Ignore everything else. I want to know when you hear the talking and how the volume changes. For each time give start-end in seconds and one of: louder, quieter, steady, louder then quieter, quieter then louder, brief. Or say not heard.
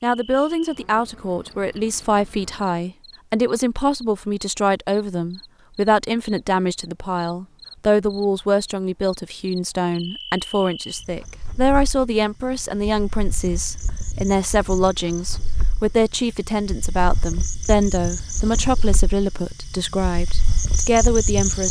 0.0-21.6 steady.